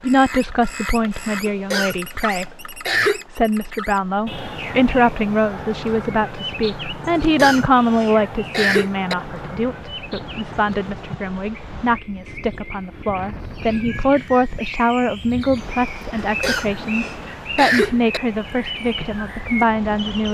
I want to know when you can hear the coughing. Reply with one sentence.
You can hear the coughing from 1.4 to 3.2 s, from 7.2 to 9.2 s and from 16.2 to 18.2 s.